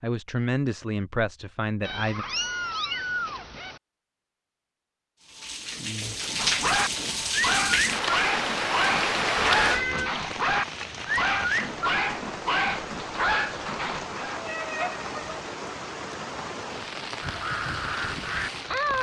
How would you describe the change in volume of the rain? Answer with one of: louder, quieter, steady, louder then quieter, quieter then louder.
quieter.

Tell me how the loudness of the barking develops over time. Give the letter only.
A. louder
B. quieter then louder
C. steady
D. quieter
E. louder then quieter
C.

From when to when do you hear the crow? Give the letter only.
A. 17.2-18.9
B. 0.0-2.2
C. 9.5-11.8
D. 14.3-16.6
A.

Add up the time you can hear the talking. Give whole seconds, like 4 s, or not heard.
2 s.